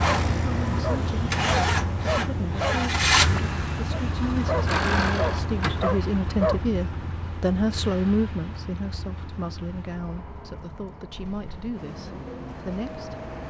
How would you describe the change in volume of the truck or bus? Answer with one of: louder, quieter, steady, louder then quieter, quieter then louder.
quieter.